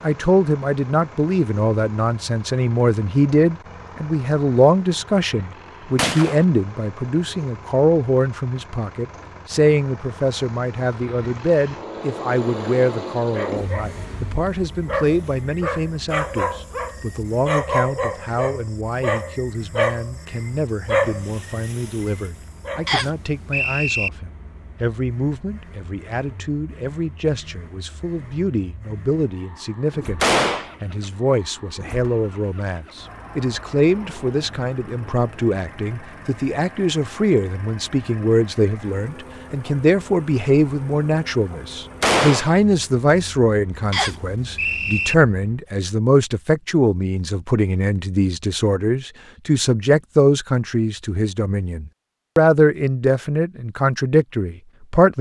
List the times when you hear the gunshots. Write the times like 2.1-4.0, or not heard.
6.0-6.5, 30.2-30.7, 42.0-42.5.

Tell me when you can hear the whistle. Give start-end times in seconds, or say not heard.
22.9-24.1, 43.9-45.1.